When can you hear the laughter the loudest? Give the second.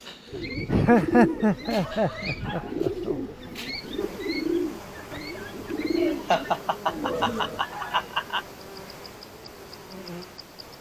1 s.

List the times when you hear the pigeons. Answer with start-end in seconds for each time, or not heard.
0.2-7.7.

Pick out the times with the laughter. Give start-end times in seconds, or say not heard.
0.7-3.2, 6.0-8.4.